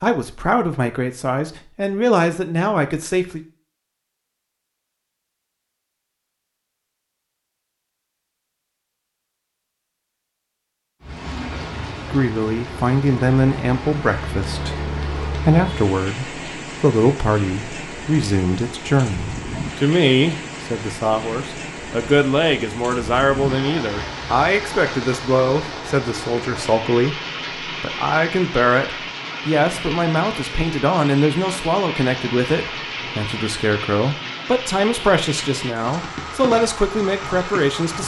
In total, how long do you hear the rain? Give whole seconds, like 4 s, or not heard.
27 s.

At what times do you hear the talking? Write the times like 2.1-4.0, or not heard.
0.0-3.4, 12.1-38.0.